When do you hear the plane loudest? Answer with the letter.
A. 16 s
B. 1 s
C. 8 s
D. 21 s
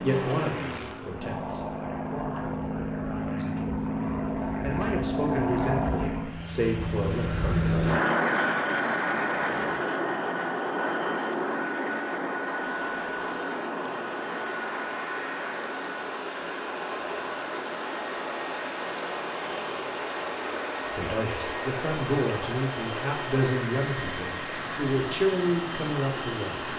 C.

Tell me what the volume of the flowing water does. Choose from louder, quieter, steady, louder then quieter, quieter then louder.
louder.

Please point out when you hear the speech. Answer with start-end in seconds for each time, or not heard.
0.0-7.7, 20.9-26.6.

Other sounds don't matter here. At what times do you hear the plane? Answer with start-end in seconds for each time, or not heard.
0.0-26.7.